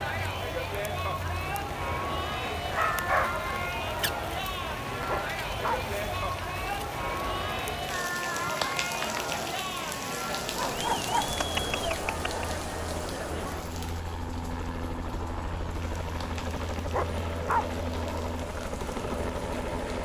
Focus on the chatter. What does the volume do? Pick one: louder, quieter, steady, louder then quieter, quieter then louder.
steady.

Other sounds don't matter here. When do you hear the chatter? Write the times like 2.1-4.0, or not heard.
0.0-13.8.